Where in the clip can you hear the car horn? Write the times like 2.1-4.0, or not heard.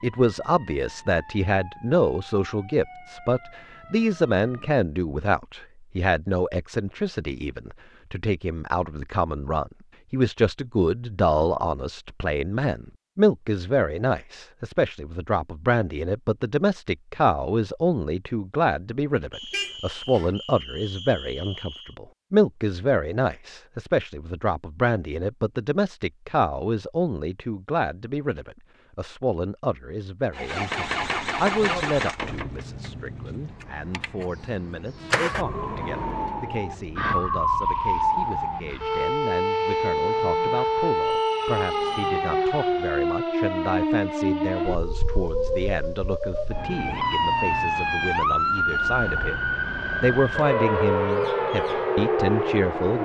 19.5-20.4.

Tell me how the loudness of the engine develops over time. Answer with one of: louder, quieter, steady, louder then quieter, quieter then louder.
quieter.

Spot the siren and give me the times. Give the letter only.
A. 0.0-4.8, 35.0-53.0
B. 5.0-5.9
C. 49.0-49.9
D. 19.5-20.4
A.